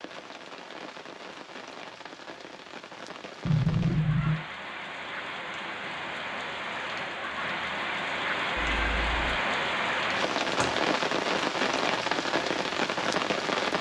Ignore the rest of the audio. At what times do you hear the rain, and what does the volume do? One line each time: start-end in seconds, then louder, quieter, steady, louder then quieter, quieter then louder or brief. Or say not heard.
0.0-13.7 louder.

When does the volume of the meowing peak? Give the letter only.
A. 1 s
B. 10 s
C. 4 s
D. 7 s
C.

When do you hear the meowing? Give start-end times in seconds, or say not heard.
3.5-4.3, 8.6-9.4.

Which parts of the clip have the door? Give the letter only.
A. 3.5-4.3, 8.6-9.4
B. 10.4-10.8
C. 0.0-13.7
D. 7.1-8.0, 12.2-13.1
B.